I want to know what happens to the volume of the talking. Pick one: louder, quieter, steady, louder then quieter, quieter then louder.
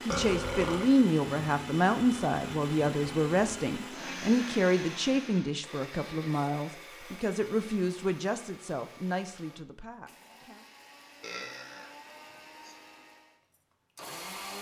quieter.